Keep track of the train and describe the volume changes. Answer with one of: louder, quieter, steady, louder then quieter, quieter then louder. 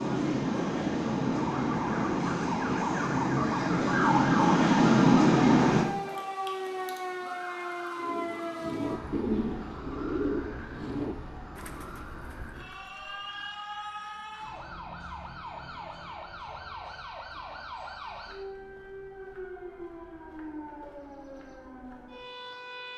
louder.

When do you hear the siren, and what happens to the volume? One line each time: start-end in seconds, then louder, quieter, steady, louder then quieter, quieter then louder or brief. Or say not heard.
0.0-22.9 quieter.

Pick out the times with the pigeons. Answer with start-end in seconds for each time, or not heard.
8.0-13.6.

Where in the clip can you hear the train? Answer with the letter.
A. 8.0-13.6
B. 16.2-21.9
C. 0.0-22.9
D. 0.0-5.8
D.